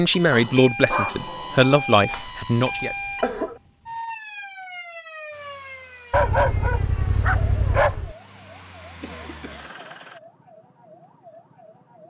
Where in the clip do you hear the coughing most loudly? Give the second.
3 s.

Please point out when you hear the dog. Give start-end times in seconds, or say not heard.
0.3-1.9, 6.1-8.2.